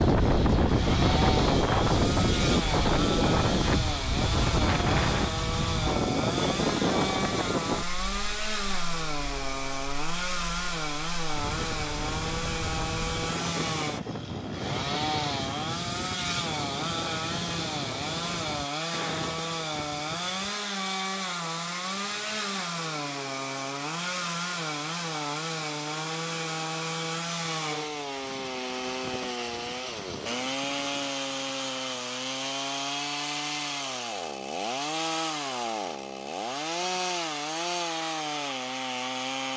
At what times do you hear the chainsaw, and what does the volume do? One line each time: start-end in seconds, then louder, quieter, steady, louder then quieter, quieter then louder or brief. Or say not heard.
0.1-39.5 steady.